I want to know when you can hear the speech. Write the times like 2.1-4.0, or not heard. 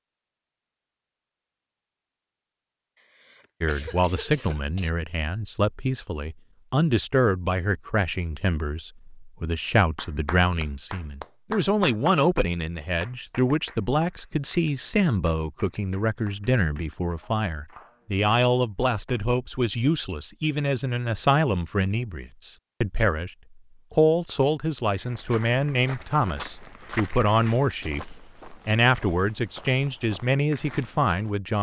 3.6-23.3, 23.9-31.5.